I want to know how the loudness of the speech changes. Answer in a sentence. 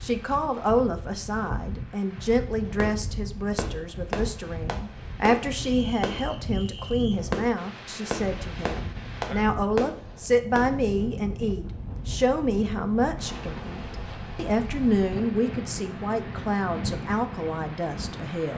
The loudness of the speech stays about the same.